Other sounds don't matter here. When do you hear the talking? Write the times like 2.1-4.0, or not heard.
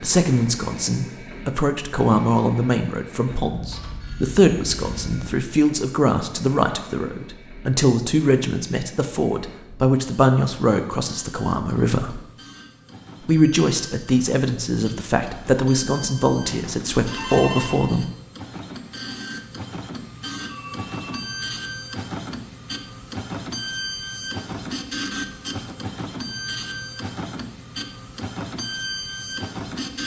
0.0-12.2, 13.2-18.1.